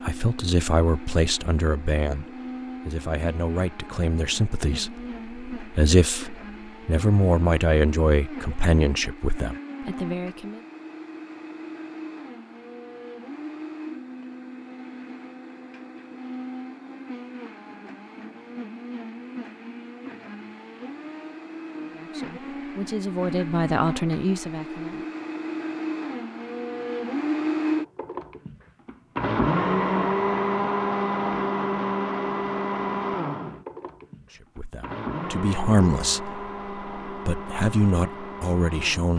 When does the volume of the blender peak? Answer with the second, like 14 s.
30 s.